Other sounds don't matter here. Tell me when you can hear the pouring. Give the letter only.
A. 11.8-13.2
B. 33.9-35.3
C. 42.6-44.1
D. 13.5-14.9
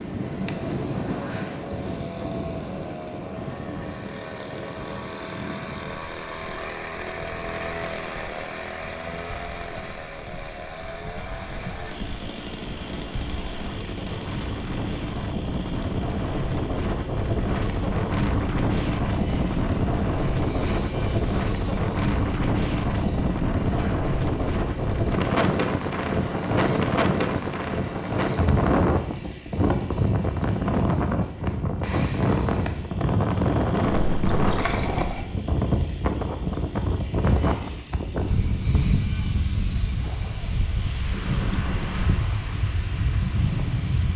B.